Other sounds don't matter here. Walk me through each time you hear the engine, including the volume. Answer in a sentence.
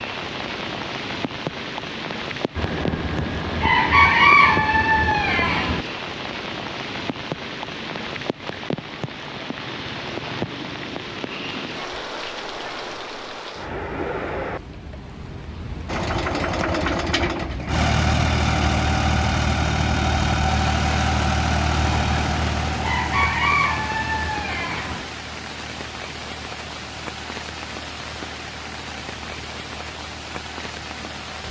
You can hear the engine from 15.8 to 31.4 s, getting quieter.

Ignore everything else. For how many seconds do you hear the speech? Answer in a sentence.
The speech can't be heard in this clip.